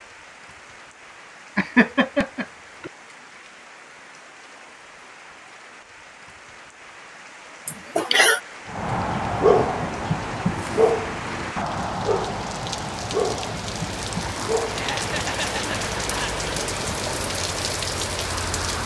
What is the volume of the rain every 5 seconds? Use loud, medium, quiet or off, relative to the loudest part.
quiet, quiet, medium, loud.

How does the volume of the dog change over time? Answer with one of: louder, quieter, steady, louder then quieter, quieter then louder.
quieter.